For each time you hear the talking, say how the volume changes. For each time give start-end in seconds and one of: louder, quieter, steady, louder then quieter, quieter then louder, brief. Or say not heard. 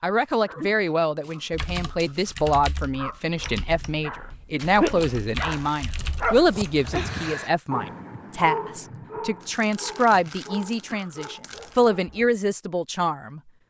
0.0-13.4 steady.